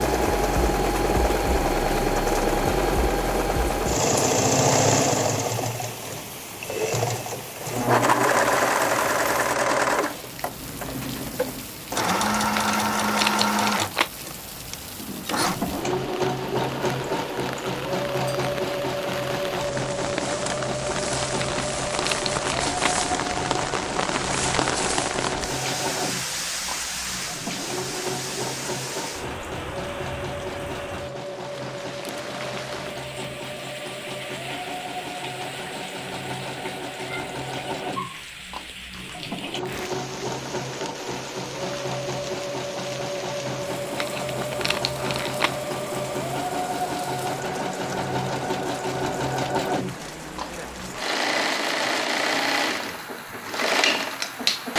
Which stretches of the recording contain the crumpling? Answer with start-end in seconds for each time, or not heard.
12.5-14.1, 21.4-22.9, 44.0-45.5.